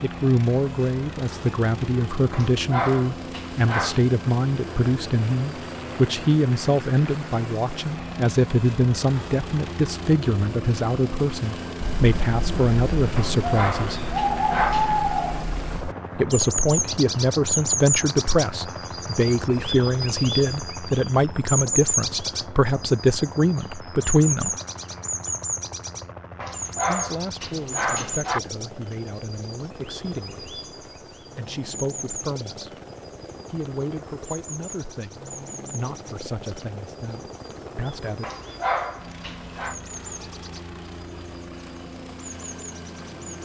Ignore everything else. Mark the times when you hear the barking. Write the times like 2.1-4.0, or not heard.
2.3-4.0, 13.2-14.9, 26.4-28.4, 38.2-39.8.